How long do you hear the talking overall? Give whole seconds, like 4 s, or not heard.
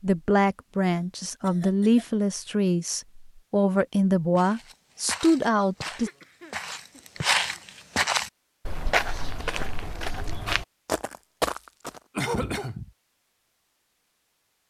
6 s.